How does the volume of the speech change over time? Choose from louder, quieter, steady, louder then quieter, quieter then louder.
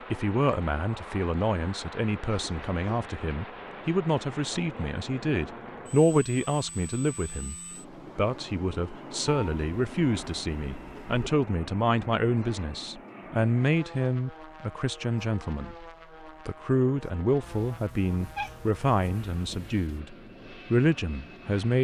steady.